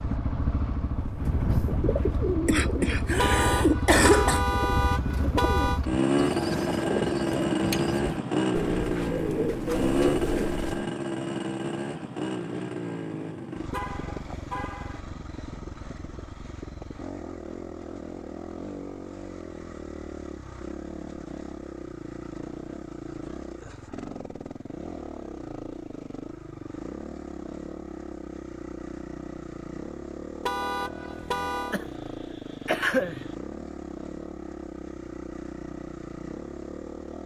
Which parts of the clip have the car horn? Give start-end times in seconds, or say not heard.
3.1-5.8, 13.7-15.0, 30.4-31.8.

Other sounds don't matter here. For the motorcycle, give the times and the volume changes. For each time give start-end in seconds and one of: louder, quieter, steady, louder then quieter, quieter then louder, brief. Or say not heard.
0.0-37.2 quieter.